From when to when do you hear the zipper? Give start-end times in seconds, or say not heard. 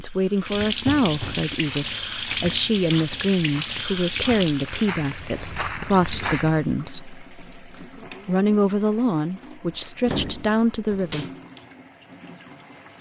not heard.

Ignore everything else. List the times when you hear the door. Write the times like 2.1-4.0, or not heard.
0.8-1.5, 9.7-11.3.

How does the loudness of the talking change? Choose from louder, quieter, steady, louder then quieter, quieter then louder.
steady.